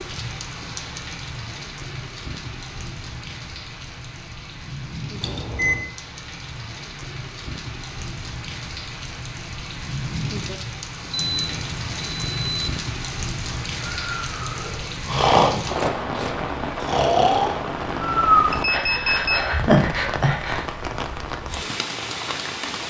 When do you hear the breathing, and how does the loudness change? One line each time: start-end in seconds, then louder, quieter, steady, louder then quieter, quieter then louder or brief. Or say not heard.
13.5-20.6 louder.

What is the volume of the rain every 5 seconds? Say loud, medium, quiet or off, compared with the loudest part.
medium, medium, loud, loud, loud.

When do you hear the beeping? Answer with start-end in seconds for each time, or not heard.
5.2-5.8, 11.1-12.7, 18.5-19.4.